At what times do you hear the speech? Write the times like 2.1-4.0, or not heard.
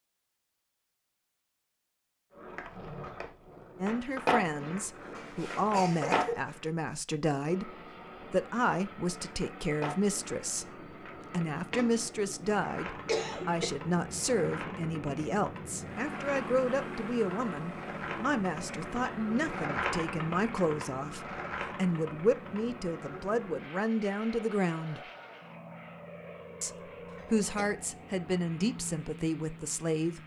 3.8-25.1, 26.6-30.2.